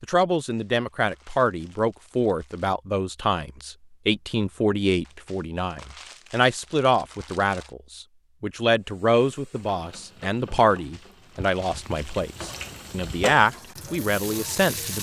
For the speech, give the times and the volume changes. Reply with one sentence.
You can hear the speech from 0.0 to 14.9 s, at a steady volume.